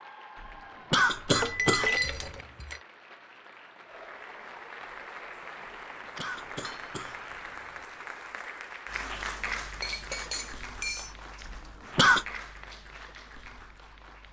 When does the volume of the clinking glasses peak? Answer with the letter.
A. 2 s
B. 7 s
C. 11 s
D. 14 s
A.